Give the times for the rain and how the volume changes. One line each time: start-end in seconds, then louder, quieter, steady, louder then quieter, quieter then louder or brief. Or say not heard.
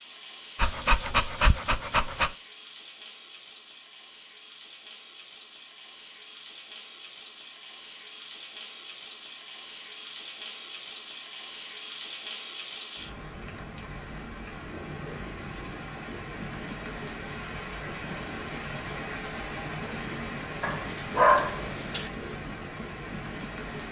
0.0-23.8 louder.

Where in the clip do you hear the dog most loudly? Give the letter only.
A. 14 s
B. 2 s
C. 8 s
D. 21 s
D.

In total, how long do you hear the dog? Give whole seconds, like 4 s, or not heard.
3 s.